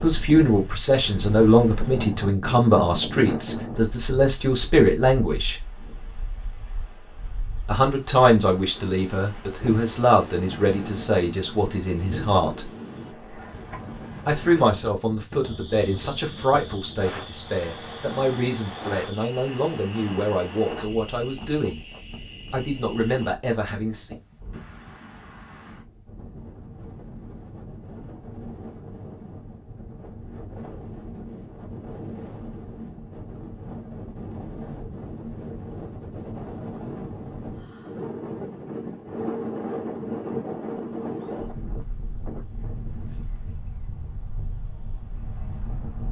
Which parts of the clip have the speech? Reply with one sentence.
You can hear the speech from 0.0 to 5.5 s, from 7.7 to 12.7 s, from 14.2 to 21.9 s and from 22.5 to 24.1 s.